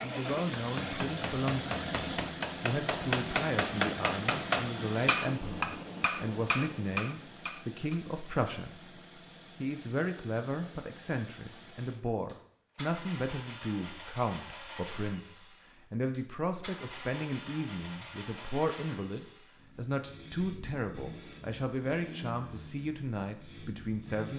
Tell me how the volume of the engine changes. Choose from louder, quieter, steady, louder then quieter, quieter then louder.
quieter.